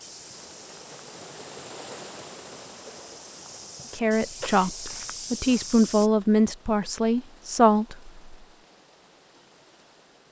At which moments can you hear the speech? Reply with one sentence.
You can hear the speech from 3.9 to 8.3 s.